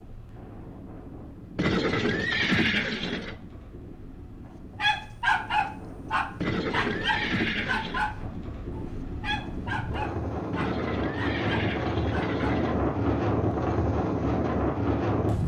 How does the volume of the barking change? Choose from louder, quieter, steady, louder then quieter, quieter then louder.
quieter.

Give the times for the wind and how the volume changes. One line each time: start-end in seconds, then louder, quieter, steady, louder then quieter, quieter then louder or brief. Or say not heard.
0.0-15.4 louder.